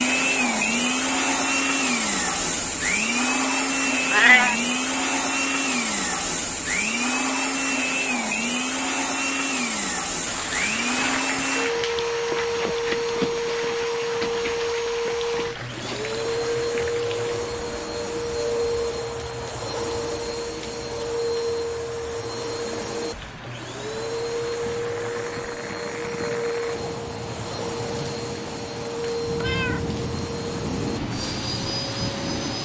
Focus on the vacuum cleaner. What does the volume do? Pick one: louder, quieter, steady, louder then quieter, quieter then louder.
quieter.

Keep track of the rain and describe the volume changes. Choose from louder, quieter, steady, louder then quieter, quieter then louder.
quieter then louder.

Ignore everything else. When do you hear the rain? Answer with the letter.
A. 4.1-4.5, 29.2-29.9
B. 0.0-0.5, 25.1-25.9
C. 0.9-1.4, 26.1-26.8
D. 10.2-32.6
D.